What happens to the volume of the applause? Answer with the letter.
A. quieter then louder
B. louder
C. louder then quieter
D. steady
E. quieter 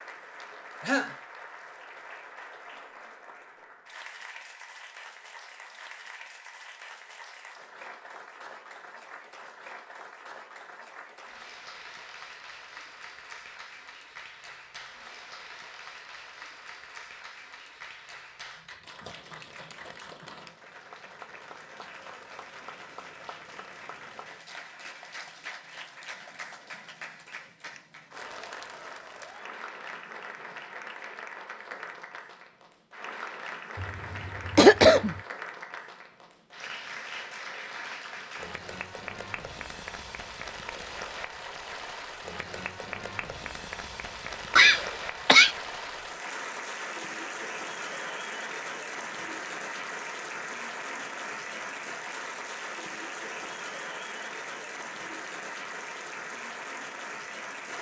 B.